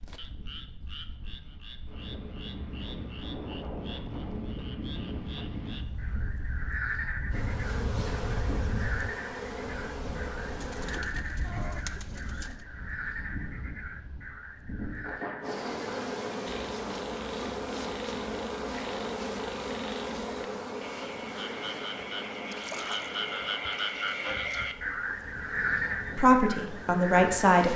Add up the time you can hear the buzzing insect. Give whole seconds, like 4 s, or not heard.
16 s.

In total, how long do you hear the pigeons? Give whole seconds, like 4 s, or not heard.
2 s.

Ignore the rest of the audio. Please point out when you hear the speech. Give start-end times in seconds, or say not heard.
26.1-27.7.